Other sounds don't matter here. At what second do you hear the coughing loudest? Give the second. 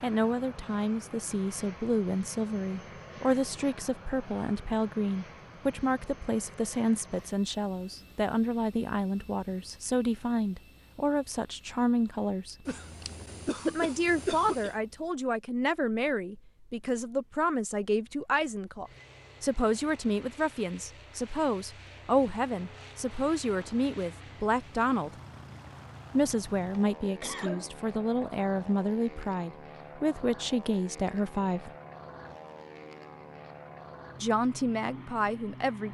14 s.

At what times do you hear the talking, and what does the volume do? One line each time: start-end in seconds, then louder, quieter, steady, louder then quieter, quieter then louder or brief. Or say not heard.
0.0-12.7 steady
13.7-25.1 steady
26.1-31.7 steady
34.2-35.8 brief.